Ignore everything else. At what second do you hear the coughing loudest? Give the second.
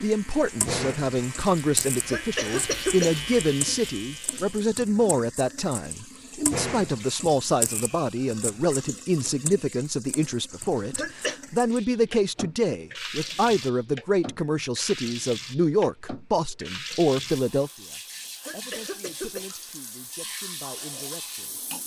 3 s.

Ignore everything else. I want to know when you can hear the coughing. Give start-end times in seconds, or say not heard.
2.0-3.2, 10.9-11.3, 18.4-19.9.